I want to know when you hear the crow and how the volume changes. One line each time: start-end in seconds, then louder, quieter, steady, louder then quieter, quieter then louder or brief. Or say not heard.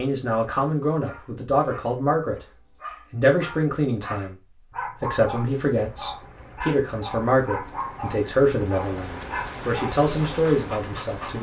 not heard.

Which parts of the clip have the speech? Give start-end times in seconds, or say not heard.
0.0-2.5, 3.1-11.3.